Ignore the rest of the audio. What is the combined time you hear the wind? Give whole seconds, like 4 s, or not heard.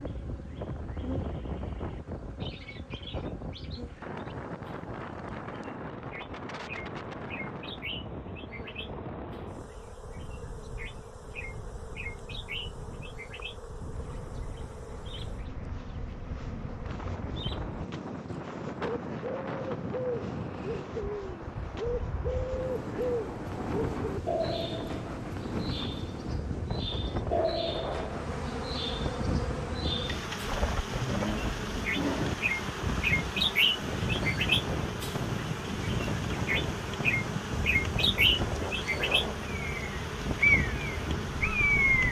42 s.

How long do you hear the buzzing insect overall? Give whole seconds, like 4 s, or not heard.
42 s.